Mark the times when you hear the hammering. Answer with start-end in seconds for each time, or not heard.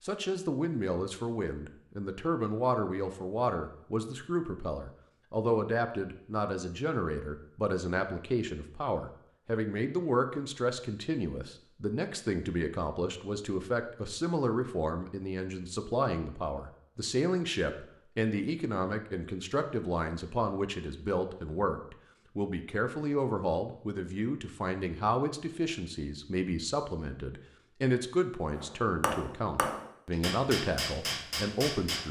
28.6-32.0.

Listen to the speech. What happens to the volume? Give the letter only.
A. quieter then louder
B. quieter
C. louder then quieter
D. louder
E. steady
E.